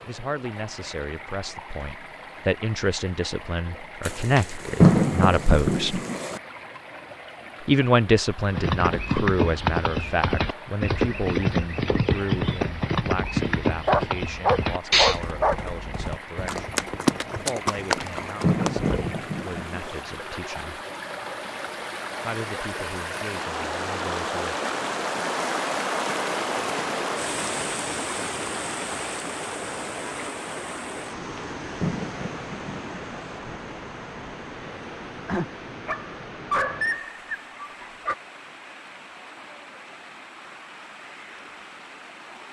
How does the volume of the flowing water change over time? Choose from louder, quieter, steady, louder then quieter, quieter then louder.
louder then quieter.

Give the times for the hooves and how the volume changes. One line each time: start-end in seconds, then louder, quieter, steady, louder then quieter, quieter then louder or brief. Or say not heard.
8.4-19.2 steady.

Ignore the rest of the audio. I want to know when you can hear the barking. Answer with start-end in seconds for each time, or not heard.
13.8-15.6, 35.2-38.1.